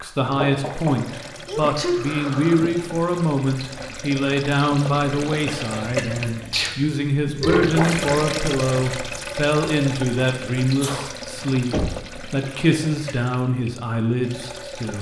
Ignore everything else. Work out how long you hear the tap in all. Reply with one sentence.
The tap can be heard for 15 seconds in total.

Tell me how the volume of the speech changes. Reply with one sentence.
The loudness of the speech stays about the same.